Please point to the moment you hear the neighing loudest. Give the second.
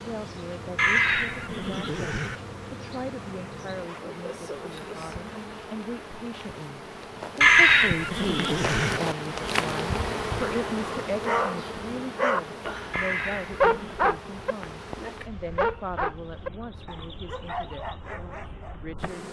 8 s.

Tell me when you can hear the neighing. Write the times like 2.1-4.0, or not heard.
0.8-2.4, 7.4-9.0, 12.9-14.0.